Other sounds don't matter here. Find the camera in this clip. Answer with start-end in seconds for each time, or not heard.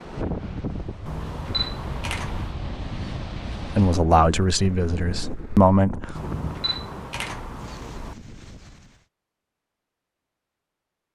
1.1-2.5, 6.1-8.2.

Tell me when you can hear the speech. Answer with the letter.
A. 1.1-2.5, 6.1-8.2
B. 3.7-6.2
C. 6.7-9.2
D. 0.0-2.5
B.